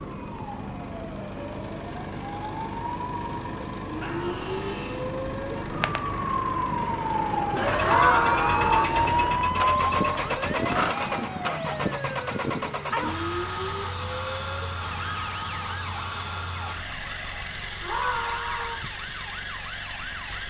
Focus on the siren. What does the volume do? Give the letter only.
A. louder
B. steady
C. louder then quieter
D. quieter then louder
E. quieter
C.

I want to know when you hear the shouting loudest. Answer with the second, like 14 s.
8 s.